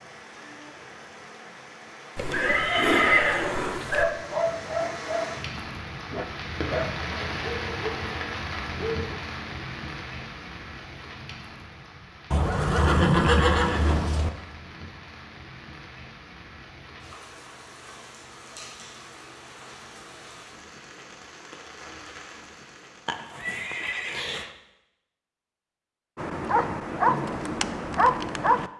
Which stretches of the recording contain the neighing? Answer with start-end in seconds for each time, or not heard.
2.1-4.0, 12.3-14.3, 23.1-24.5.